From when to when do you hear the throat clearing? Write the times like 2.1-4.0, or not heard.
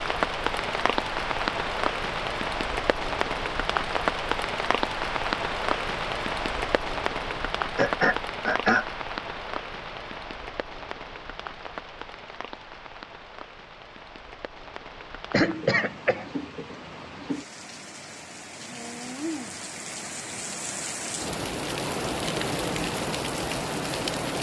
7.3-8.8, 15.3-16.3.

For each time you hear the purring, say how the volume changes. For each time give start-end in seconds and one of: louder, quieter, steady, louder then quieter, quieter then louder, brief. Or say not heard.
not heard.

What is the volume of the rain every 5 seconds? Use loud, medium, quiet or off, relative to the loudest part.
loud, loud, quiet, medium, loud.